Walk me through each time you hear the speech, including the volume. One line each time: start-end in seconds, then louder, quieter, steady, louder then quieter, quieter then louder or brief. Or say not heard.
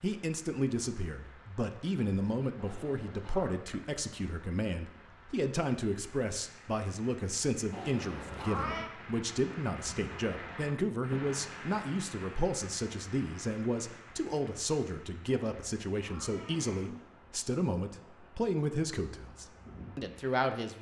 0.0-20.7 steady.